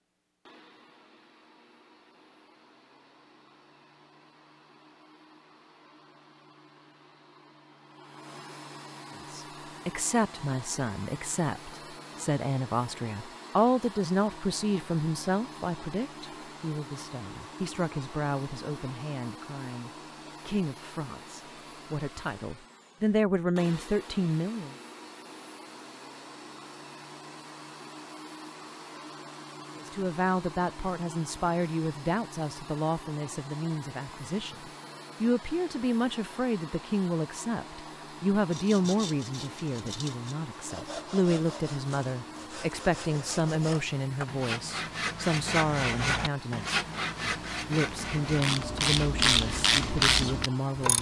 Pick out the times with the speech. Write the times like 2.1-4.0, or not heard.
9.3-24.8, 29.8-50.9.